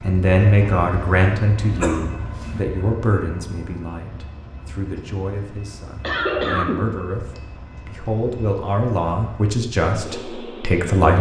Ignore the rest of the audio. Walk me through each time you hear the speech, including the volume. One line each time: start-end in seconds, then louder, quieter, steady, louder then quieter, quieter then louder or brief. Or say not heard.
0.0-11.1 quieter then louder.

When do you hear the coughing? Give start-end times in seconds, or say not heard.
1.8-2.5, 6.0-6.9.